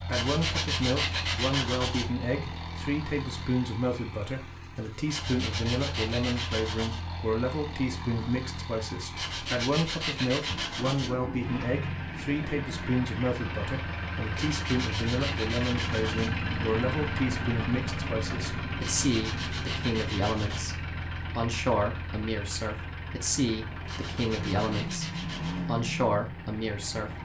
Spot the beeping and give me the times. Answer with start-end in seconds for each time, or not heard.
not heard.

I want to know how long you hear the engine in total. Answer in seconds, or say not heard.
27 s.